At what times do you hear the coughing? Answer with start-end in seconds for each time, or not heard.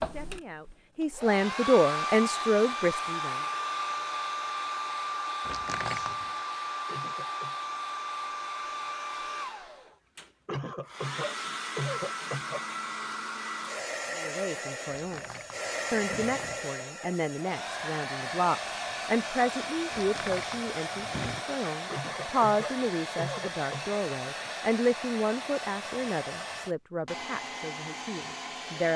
6.8-7.5, 10.4-12.7, 21.9-24.0.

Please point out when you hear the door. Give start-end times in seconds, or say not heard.
5.5-6.3, 14.8-16.8, 19.9-21.4.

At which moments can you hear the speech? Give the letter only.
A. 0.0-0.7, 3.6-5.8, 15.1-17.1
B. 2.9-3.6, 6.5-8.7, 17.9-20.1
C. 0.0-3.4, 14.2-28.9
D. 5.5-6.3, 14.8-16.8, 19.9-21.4
C.